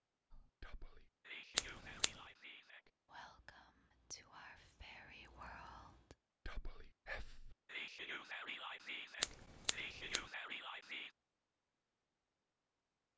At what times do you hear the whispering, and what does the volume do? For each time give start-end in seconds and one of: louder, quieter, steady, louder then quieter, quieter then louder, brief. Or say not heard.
0.3-11.1 louder.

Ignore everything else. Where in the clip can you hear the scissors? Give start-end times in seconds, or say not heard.
1.6-2.1, 9.2-10.2.